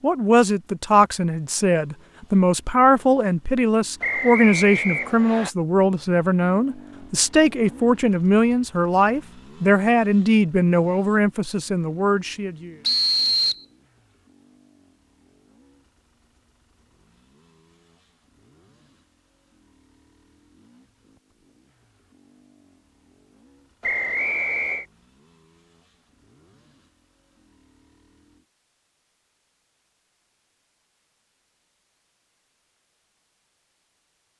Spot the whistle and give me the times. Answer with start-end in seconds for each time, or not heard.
4.0-5.5, 12.8-13.7, 23.8-24.9.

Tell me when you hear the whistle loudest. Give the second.
13 s.